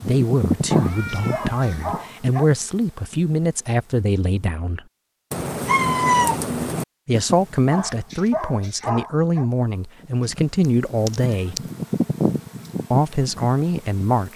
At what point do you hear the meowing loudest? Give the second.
6 s.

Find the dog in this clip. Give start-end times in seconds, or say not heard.
0.7-2.5, 7.7-9.4.